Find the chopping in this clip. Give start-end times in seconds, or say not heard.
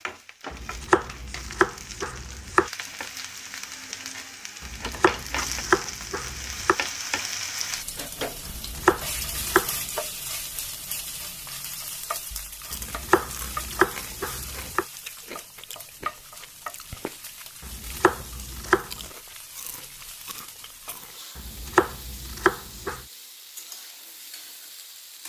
0.5-2.7, 4.6-6.8, 8.4-10.0, 12.7-14.8, 17.6-19.1, 21.4-23.0.